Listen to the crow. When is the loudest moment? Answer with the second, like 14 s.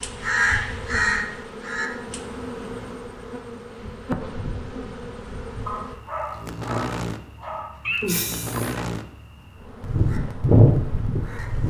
11 s.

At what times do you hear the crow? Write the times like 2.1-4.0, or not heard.
0.0-2.2, 9.8-11.6.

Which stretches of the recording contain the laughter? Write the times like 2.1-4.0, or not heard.
7.8-8.8.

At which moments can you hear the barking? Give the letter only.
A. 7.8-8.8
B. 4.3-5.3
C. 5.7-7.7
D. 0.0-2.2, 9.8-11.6
C.